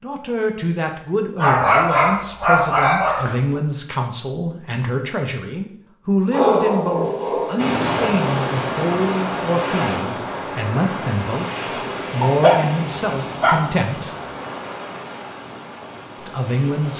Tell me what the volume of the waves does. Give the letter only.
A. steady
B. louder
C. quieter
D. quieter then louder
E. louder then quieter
C.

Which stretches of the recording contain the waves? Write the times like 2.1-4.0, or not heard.
7.5-16.9.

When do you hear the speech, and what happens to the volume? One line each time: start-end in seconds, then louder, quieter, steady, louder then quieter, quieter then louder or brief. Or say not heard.
0.0-14.1 steady
16.2-16.9 brief.